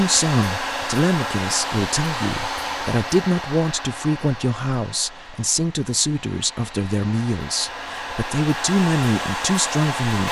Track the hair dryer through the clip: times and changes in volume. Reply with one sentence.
You can hear the hair dryer from 0.0 to 10.2 s, getting quieter then louder.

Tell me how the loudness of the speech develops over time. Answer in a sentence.
The loudness of the speech stays about the same.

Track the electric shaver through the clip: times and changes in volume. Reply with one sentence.
You can't hear the electric shaver here.